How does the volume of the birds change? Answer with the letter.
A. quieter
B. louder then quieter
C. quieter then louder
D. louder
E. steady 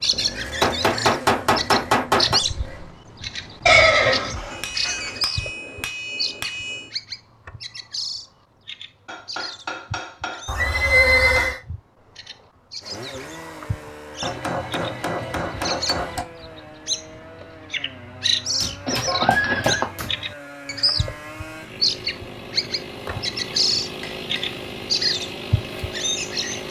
C.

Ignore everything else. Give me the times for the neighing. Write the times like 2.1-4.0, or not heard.
3.6-5.1, 10.4-11.6, 18.9-19.9.